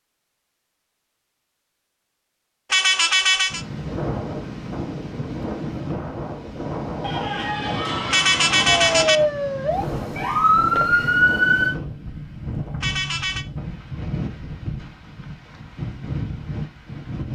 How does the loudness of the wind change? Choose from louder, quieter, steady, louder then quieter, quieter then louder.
steady.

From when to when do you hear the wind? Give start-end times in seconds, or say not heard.
3.5-17.3.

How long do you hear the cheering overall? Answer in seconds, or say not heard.
2 s.